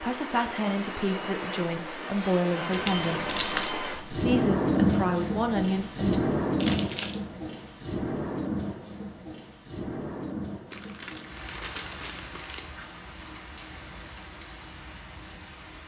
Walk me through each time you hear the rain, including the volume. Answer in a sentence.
The rain can be heard from 0.0 to 15.8 s, getting louder then quieter.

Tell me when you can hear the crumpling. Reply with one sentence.
You can hear the crumpling from 2.7 to 3.7 s, from 6.5 to 7.2 s and from 10.7 to 12.7 s.